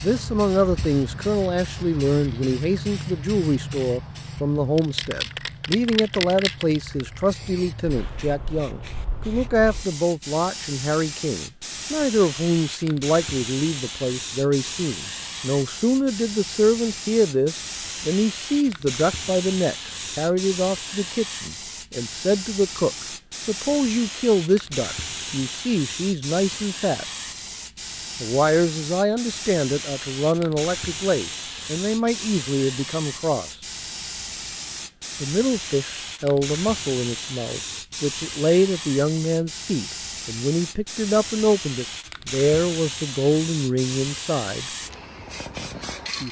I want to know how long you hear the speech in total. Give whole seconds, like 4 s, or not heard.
42 s.